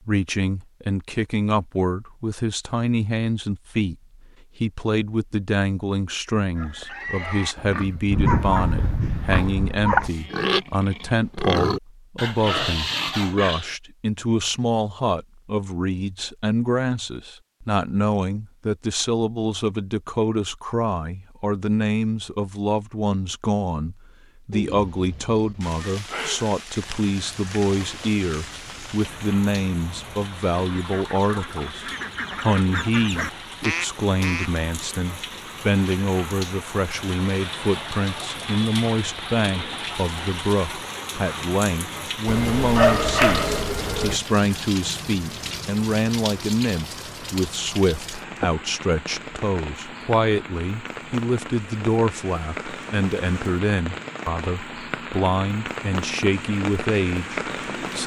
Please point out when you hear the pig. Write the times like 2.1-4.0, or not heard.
6.5-13.8.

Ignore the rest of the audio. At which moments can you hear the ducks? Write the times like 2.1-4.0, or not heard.
26.7-34.9.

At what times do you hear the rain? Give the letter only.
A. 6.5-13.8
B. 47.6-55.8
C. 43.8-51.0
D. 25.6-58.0
D.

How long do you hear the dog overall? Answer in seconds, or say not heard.
4 s.